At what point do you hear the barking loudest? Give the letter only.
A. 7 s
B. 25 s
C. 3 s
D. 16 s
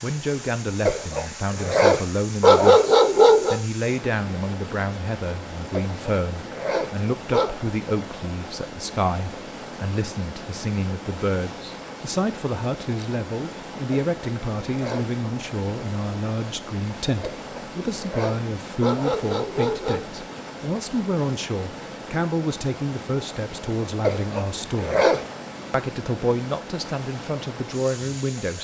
C.